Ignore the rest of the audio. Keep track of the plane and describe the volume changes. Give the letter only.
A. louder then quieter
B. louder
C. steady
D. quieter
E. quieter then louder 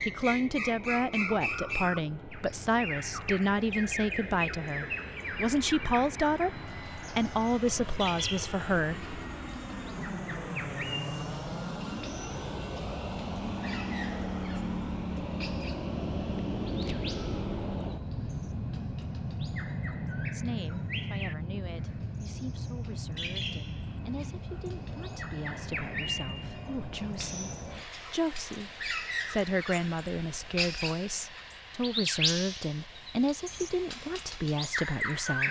A.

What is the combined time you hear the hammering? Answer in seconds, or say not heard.
not heard.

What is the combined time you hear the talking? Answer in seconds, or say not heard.
24 s.